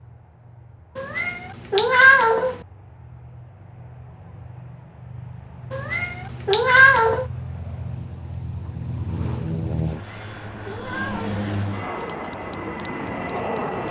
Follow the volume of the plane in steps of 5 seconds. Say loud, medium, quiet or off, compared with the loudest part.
quiet, loud, loud.